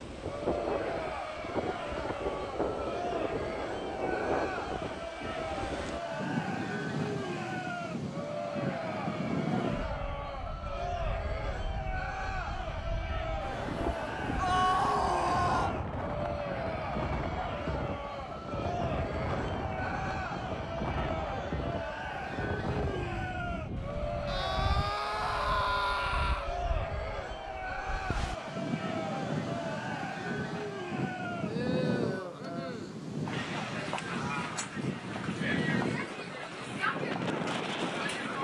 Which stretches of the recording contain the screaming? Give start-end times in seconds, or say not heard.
14.3-15.8, 24.2-26.5.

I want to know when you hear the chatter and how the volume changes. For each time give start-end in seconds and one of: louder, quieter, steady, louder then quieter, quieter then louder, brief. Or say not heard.
0.1-38.3 steady.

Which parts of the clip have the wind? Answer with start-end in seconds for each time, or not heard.
0.0-38.3.